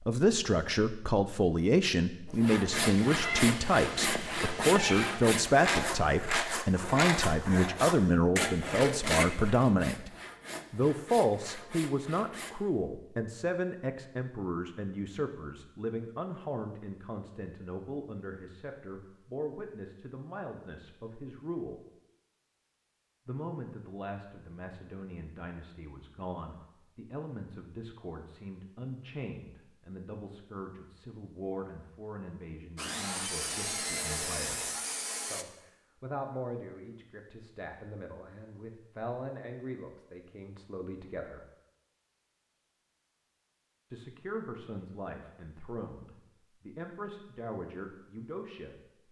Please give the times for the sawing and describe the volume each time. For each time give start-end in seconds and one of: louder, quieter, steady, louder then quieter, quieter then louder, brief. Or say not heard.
2.3-12.6 quieter
32.8-35.5 brief.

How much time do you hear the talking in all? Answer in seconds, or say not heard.
44 s.